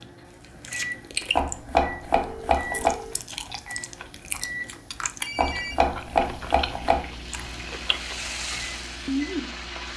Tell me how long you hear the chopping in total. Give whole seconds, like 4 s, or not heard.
3 s.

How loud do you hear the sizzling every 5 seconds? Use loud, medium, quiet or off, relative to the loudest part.
off, loud.